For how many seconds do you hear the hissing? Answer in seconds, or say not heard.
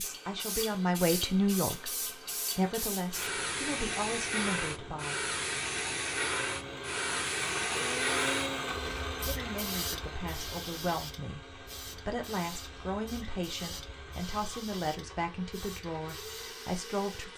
17 s.